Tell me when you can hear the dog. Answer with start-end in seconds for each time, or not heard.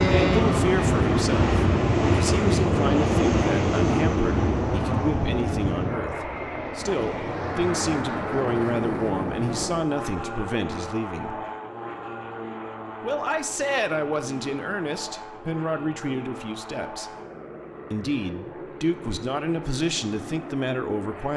not heard.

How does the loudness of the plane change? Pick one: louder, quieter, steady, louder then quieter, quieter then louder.
quieter.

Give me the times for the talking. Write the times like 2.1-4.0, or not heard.
0.2-11.4, 13.0-17.1, 17.9-21.3.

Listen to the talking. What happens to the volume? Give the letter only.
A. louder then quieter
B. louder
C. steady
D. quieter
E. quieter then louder
C.